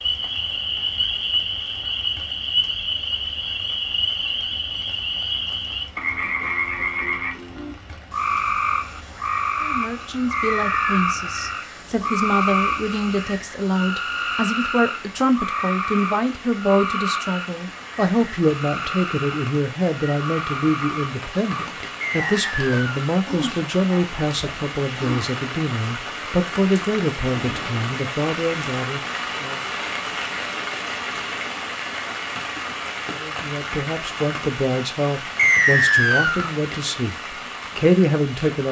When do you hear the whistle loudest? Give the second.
36 s.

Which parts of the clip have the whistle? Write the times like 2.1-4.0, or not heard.
10.3-10.8, 22.1-22.9, 35.4-36.5.